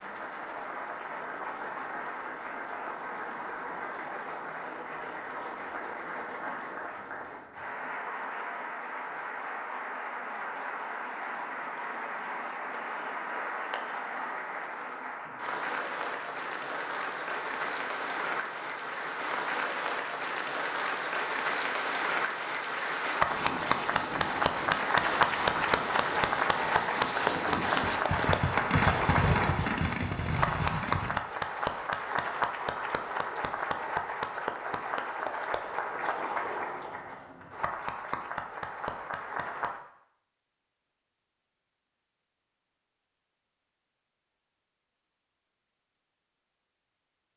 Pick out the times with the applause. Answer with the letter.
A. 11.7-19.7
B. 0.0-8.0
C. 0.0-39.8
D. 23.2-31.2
C.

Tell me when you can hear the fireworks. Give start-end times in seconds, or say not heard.
23.2-31.2.